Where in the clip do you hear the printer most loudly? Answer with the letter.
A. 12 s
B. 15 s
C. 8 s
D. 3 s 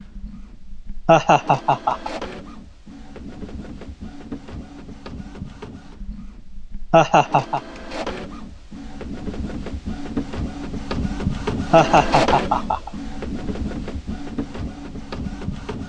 A.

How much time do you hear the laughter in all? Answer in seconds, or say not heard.
3 s.